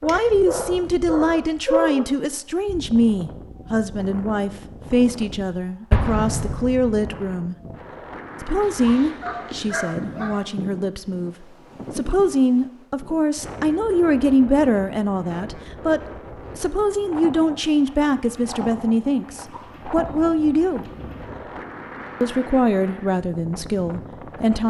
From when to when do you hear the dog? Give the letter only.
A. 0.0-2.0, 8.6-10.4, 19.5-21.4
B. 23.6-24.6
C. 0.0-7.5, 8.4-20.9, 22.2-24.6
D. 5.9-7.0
A.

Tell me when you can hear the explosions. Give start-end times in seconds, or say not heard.
5.9-7.0.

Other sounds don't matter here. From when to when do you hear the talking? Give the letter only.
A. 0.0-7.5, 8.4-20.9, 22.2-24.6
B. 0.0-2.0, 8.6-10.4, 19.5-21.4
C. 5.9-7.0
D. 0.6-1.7
A.